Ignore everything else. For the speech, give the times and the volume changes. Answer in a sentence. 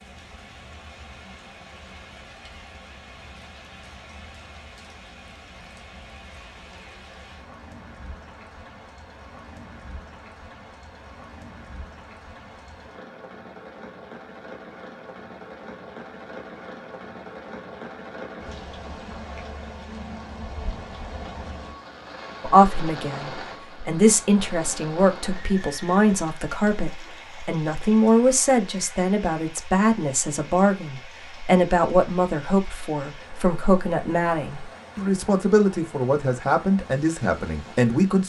You can hear the speech from 22.4 to 38.2 s, at a steady volume.